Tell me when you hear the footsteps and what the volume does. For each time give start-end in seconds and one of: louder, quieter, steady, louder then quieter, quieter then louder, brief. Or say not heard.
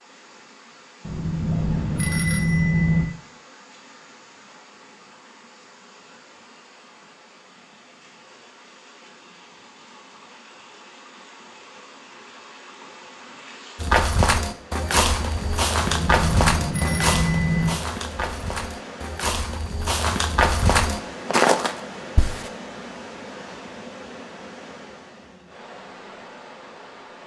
13.8-22.5 quieter then louder.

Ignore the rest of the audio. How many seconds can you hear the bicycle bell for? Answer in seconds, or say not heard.
4 s.